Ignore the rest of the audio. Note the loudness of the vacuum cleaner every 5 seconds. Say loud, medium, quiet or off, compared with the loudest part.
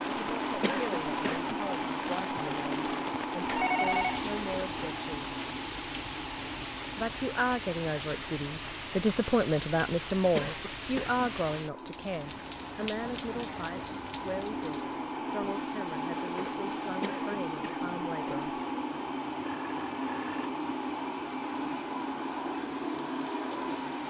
loud, medium, medium, loud, loud.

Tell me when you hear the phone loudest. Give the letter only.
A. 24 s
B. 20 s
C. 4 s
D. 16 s
C.